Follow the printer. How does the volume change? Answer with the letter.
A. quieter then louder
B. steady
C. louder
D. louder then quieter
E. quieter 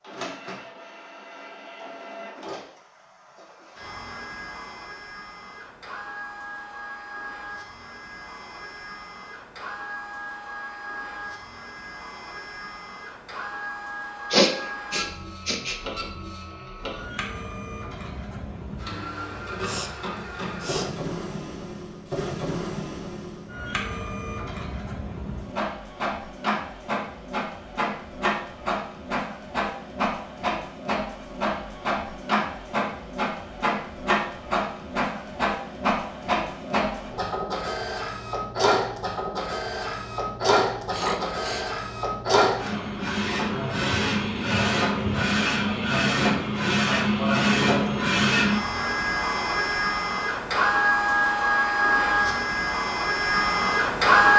C.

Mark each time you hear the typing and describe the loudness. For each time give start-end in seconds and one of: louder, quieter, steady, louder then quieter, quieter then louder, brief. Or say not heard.
not heard.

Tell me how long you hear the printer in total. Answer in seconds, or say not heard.
54 s.